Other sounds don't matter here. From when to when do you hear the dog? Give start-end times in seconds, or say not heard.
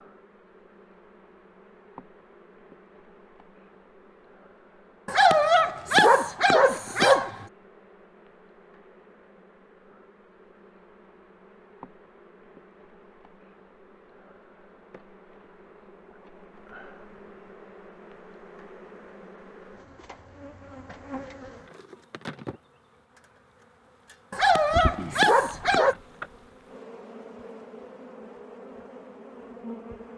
5.0-7.5, 24.3-25.9.